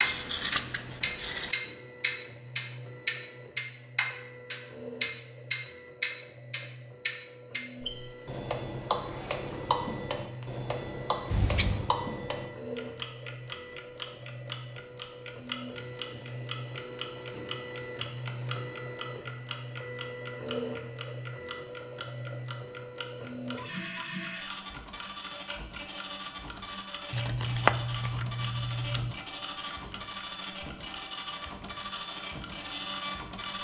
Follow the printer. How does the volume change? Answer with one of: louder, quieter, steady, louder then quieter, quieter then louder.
louder.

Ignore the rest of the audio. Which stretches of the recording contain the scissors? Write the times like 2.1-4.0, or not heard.
0.0-1.6, 11.3-11.9, 27.1-29.1.